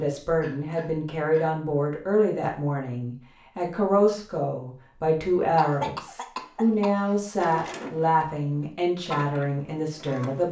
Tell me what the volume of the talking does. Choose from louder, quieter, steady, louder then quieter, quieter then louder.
steady.